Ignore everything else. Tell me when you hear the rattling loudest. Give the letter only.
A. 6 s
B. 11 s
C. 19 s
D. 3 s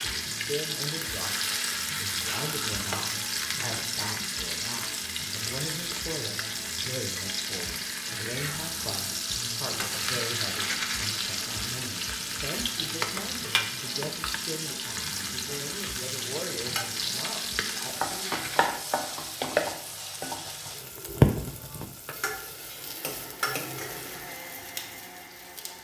B.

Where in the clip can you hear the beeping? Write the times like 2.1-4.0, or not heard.
not heard.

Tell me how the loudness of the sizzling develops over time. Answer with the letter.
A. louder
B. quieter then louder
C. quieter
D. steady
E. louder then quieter
D.